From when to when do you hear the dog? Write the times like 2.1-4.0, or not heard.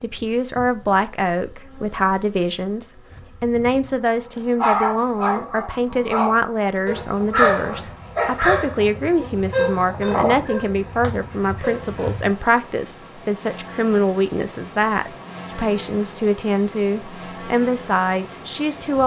4.5-12.4.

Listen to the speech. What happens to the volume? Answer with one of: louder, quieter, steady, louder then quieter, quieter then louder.
steady.